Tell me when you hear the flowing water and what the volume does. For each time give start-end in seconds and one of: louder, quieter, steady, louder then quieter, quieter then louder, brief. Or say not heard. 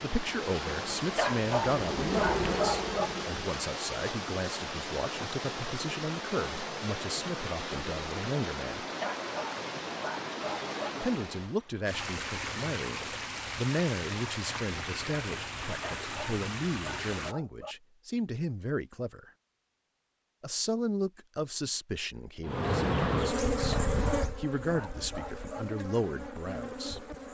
0.0-17.4 steady.